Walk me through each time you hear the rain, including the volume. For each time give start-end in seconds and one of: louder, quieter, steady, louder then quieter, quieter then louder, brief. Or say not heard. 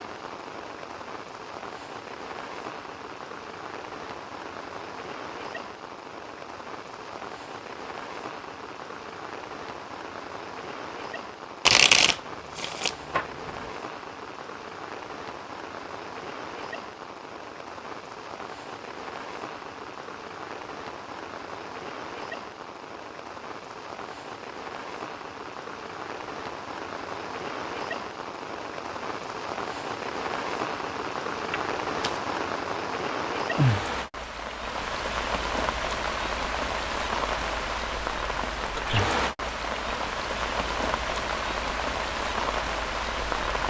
0.0-43.6 louder.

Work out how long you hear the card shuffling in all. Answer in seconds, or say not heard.
3 s.